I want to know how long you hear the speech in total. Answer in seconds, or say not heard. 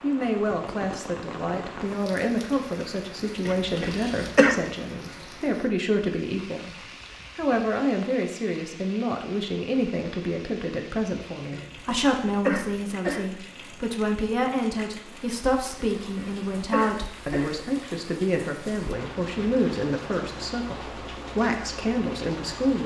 22 s.